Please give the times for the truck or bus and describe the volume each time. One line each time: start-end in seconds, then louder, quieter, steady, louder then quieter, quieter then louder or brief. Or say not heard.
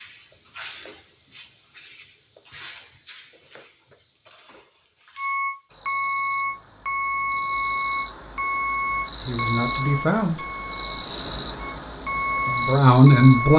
5.2-13.5 quieter then louder.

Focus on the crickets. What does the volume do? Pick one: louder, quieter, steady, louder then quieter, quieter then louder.
quieter then louder.